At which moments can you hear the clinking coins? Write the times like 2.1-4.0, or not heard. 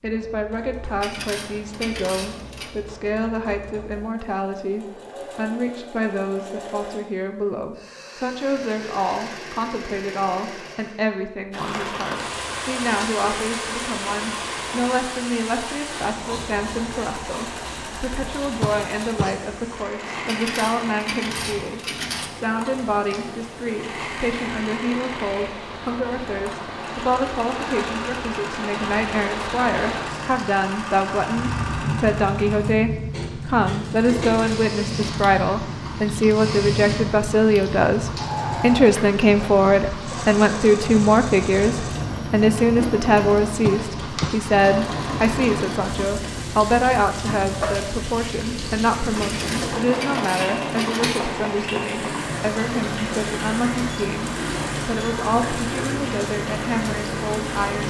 1.0-2.7, 20.2-22.3, 49.2-51.2.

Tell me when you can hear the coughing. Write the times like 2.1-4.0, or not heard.
18.6-19.4, 43.6-44.4.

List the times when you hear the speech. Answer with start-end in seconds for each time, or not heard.
0.0-57.8.